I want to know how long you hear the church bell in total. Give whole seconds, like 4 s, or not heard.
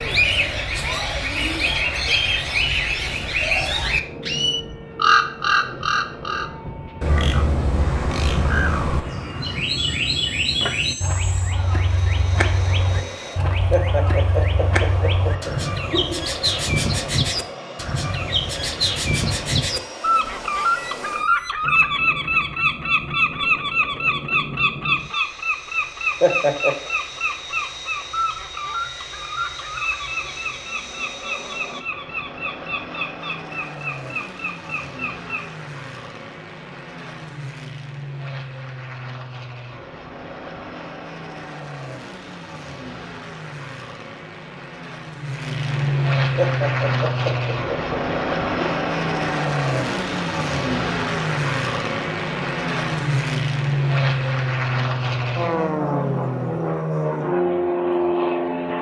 not heard.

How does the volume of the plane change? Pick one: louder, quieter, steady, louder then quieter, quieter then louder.
louder.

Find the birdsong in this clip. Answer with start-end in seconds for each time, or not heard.
0.0-35.5.